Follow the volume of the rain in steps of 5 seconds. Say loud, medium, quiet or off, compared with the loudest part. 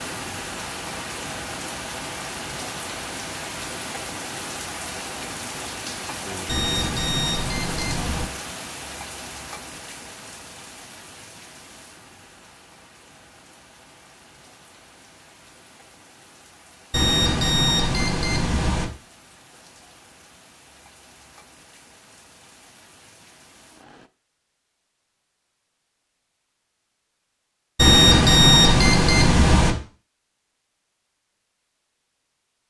loud, loud, quiet, quiet, quiet, off, off.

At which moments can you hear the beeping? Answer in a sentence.
The beeping can be heard from 6.5 to 8.3 s, from 16.9 to 18.9 s and from 27.8 to 29.8 s.